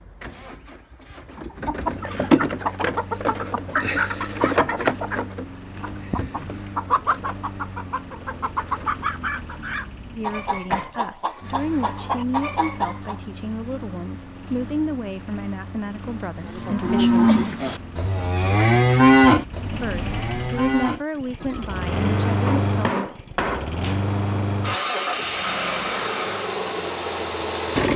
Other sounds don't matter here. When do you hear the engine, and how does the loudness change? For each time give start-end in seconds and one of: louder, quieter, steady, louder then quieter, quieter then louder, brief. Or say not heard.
0.0-27.9 louder.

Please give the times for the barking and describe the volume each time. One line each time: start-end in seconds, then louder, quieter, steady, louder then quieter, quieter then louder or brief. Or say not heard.
not heard.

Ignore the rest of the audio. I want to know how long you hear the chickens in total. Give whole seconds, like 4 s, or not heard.
12 s.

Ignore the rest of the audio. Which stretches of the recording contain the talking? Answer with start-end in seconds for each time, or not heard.
10.1-17.3, 19.7-23.1.